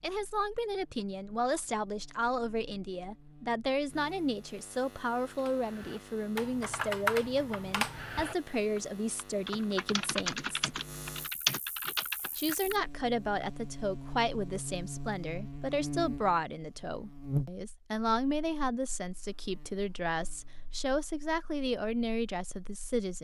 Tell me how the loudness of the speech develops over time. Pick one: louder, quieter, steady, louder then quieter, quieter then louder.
steady.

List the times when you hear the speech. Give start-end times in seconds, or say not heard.
0.0-10.8, 12.3-23.1.